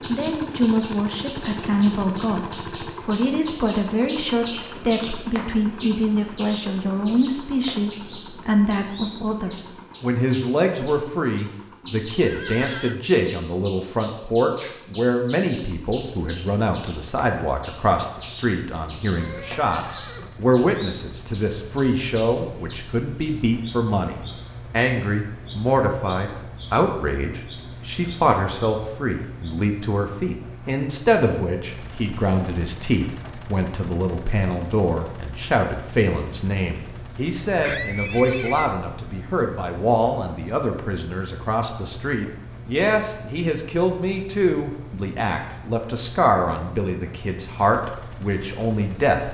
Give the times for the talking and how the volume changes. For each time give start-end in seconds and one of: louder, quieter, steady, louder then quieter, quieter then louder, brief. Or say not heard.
0.1-49.2 steady.